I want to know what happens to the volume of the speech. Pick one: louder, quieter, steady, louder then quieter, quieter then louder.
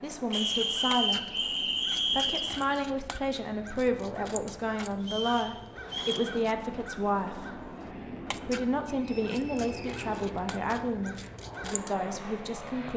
steady.